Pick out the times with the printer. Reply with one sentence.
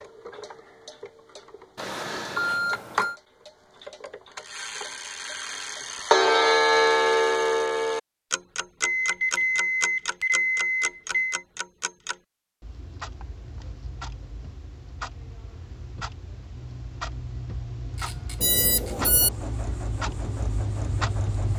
The printer can be heard from 17.9 to 21.5 s.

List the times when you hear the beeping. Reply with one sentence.
The beeping can be heard from 1.8 to 3.1 s, from 8.8 to 11.4 s and from 18.4 to 19.3 s.